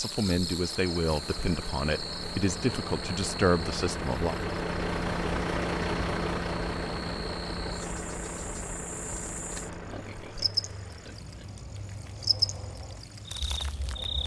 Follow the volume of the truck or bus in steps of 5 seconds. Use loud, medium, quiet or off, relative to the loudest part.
loud, loud, quiet.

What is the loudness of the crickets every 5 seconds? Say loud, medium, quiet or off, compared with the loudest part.
medium, medium, loud.